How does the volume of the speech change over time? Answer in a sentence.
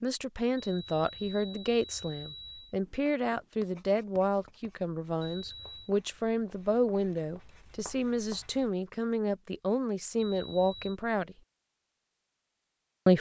The loudness of the speech stays about the same.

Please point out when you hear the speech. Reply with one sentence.
You can hear the speech from 0.0 to 11.3 s.